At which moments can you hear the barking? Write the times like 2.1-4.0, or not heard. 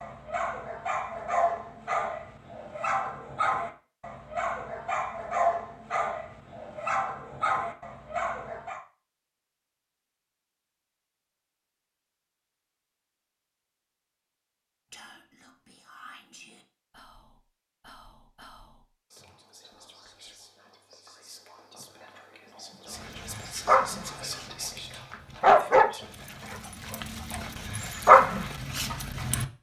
0.0-8.8, 22.9-29.5.